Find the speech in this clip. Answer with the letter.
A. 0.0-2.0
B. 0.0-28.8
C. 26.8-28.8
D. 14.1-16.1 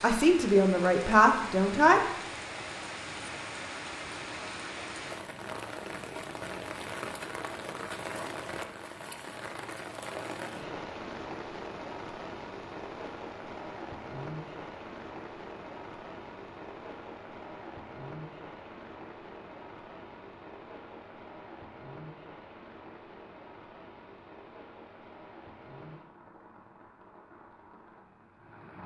A.